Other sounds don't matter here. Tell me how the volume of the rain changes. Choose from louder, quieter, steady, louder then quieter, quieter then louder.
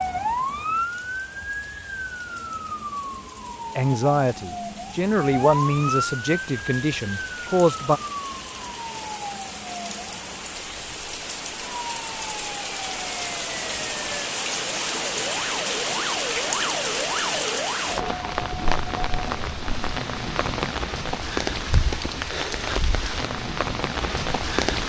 louder.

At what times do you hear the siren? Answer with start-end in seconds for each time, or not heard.
0.0-18.1.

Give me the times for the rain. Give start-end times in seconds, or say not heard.
0.0-24.8.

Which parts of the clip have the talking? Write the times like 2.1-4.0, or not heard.
3.8-8.0.